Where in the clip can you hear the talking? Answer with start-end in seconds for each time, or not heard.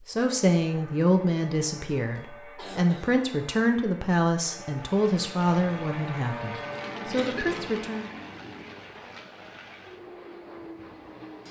0.1-8.1.